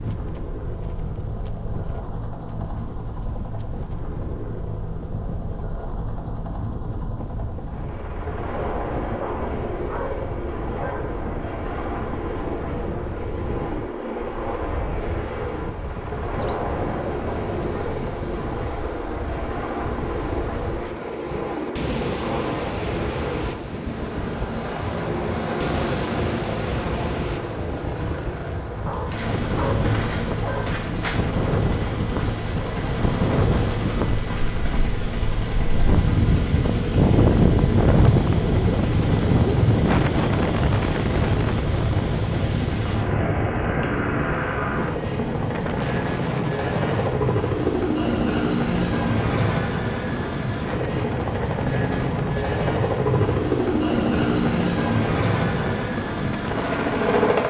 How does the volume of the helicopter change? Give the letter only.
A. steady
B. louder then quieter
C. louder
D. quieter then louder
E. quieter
C.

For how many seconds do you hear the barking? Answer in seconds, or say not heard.
4 s.